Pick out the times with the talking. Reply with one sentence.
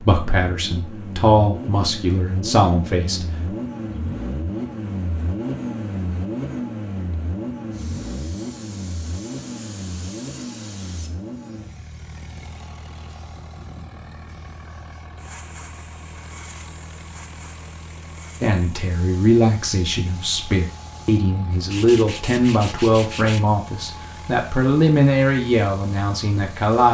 The talking can be heard from 0.0 to 3.5 s and from 18.4 to 26.8 s.